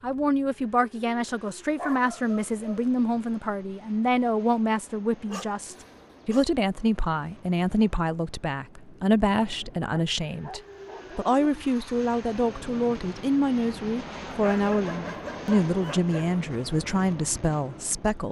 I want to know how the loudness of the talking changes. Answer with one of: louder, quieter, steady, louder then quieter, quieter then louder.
steady.